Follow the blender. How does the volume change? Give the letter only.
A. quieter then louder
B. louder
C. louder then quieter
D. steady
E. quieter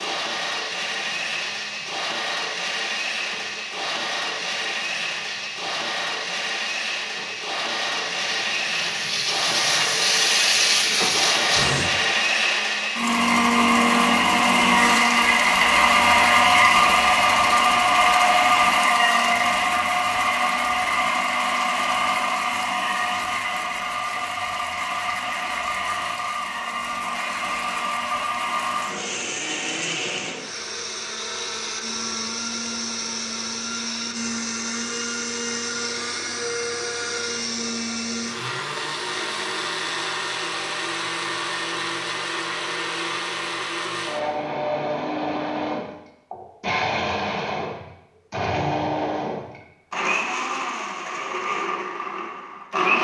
C.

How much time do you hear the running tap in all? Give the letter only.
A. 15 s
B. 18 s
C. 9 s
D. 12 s
D.